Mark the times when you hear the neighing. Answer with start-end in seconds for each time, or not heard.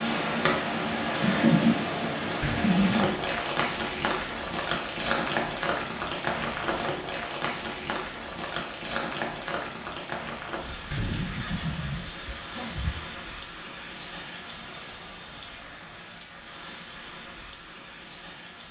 2.4-3.0, 10.9-12.9.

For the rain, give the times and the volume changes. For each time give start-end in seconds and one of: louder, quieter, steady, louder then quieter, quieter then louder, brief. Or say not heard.
0.0-18.6 quieter.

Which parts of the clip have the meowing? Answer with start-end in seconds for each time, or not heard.
not heard.